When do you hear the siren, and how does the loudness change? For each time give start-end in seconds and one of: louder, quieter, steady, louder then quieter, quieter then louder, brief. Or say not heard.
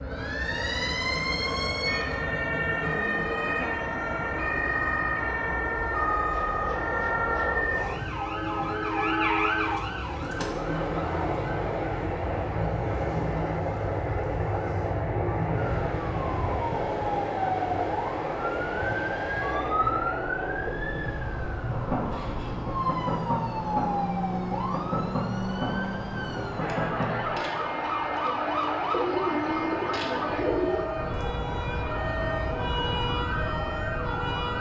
0.1-34.5 steady.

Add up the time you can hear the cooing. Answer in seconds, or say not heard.
4 s.